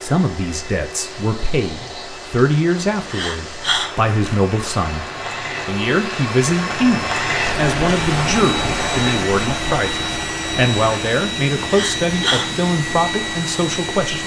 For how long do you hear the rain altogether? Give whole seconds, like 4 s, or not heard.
14 s.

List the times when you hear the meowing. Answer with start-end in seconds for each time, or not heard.
not heard.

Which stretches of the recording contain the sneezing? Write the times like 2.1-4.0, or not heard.
3.1-3.9, 11.7-12.4.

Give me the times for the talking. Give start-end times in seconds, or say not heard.
0.0-14.2.